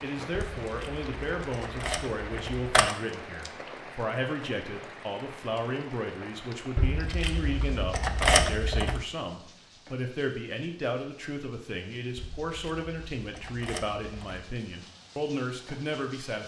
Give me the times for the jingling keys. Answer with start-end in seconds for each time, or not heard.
0.3-3.0, 6.8-9.1, 12.2-14.4.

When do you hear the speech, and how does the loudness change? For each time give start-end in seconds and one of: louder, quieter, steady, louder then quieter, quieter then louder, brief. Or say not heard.
0.0-16.4 steady.